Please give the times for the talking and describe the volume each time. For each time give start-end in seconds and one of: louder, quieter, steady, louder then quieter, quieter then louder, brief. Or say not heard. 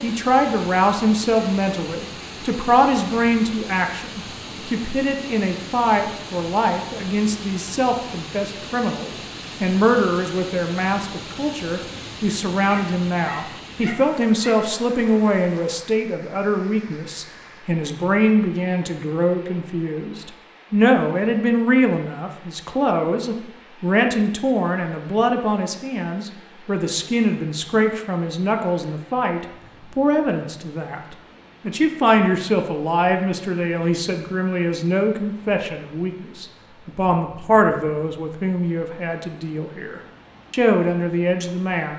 0.0-41.9 steady.